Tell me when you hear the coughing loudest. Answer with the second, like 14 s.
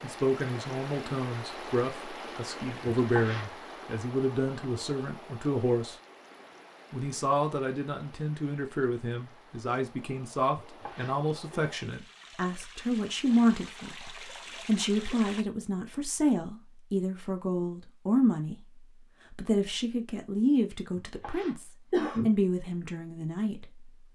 22 s.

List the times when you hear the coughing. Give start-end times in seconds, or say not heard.
3.0-3.5, 10.6-11.6, 21.2-22.3.